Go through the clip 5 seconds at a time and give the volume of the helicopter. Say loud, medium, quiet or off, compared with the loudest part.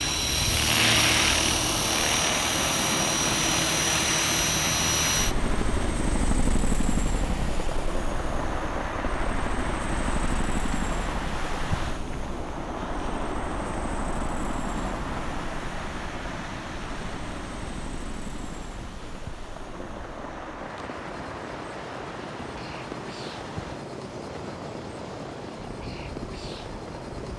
loud, medium, quiet, quiet, quiet, quiet.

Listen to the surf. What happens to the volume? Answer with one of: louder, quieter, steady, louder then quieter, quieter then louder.
quieter.